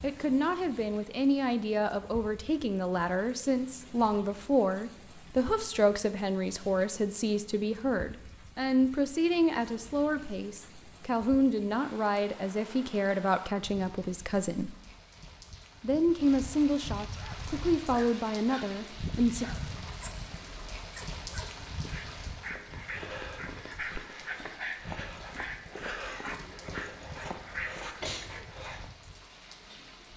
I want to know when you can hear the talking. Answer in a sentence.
You can hear the talking from 0.0 to 14.8 s and from 15.8 to 19.4 s.